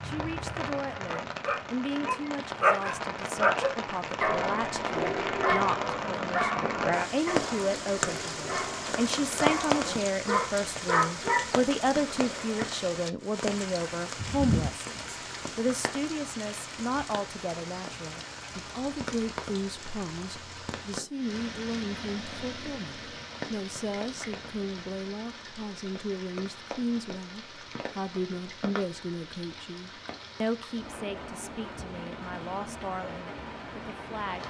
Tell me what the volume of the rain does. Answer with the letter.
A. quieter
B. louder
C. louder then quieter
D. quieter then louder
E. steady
A.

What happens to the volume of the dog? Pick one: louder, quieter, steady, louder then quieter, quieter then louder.
quieter then louder.